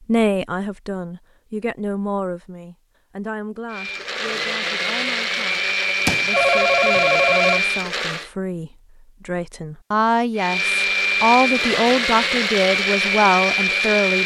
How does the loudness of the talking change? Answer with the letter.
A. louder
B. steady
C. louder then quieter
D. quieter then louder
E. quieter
D.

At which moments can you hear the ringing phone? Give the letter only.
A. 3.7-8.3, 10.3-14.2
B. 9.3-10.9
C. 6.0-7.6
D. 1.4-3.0
C.